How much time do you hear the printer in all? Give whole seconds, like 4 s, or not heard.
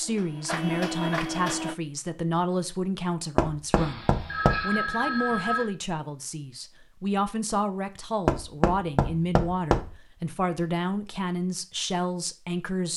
2 s.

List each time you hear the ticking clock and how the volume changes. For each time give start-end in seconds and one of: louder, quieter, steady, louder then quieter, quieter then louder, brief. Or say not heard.
not heard.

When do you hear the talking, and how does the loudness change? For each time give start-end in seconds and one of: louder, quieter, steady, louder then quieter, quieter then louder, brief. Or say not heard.
0.0-12.9 steady.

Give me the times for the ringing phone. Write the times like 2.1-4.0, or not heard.
3.8-5.7.